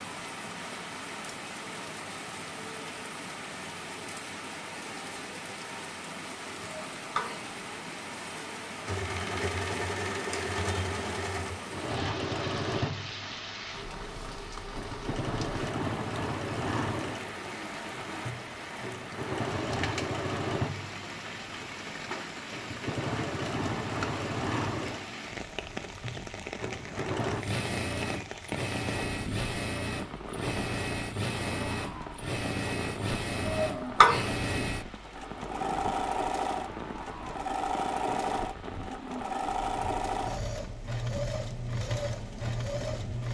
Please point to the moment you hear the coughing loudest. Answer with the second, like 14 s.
34 s.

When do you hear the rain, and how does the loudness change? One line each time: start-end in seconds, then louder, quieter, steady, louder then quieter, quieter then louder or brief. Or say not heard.
0.0-43.2 steady.